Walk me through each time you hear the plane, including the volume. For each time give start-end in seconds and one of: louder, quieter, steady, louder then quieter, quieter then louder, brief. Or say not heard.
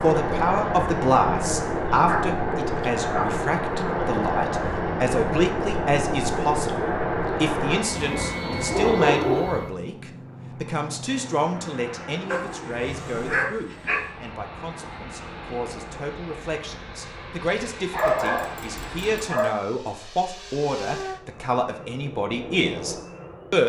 0.0-23.6 quieter.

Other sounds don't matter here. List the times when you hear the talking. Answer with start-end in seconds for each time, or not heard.
0.0-23.6.